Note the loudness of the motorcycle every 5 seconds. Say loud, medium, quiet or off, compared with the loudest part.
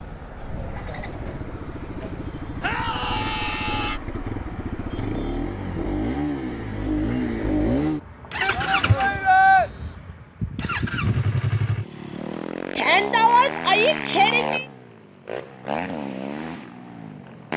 medium, loud, loud, medium.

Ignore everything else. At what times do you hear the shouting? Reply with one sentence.
You can hear the shouting from 2.6 to 4.0 s, from 8.4 to 9.7 s and from 12.8 to 14.7 s.